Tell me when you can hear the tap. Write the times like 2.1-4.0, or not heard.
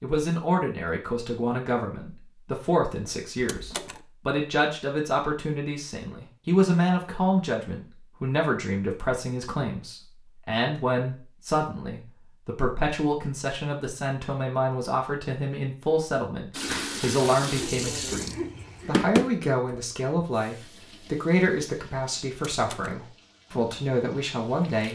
16.5-24.9.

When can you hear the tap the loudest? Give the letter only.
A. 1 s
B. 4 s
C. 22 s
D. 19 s
D.